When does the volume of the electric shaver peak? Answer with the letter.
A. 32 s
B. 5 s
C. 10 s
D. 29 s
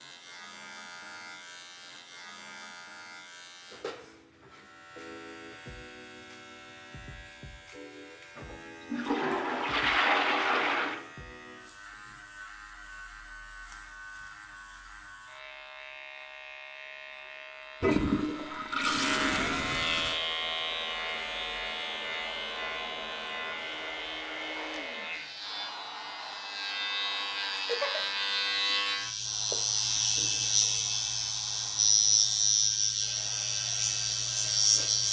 A.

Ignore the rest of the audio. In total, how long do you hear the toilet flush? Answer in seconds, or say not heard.
5 s.